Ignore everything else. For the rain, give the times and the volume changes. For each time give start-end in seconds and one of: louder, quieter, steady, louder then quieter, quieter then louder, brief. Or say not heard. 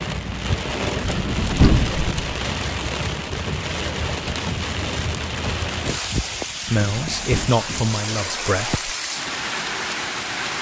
0.0-10.5 steady.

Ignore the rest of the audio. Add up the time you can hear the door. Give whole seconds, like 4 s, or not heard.
2 s.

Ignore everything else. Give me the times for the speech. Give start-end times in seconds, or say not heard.
6.7-8.8.